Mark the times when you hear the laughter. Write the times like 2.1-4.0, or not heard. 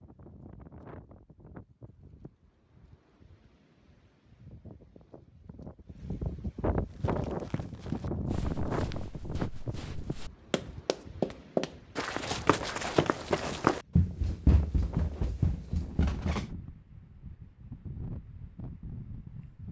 not heard.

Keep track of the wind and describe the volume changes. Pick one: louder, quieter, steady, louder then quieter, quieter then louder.
louder then quieter.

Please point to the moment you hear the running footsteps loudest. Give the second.
14 s.